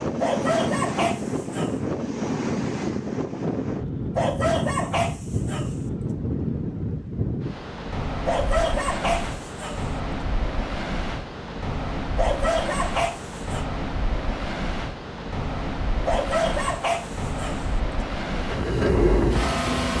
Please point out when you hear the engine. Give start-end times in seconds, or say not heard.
18.3-19.9.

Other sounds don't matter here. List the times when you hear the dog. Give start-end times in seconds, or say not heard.
0.2-1.8, 4.2-5.7, 8.2-9.8, 12.2-13.7, 16.1-17.6.